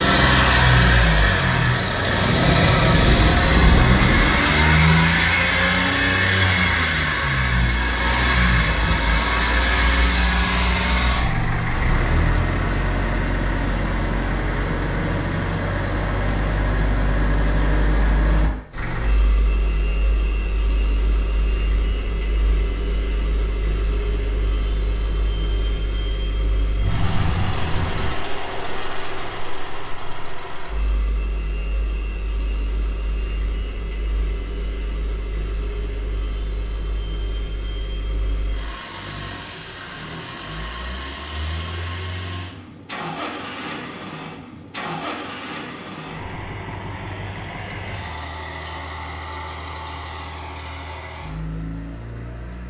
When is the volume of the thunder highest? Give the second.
4 s.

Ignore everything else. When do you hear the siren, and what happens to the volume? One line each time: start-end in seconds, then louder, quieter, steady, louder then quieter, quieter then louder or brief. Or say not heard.
not heard.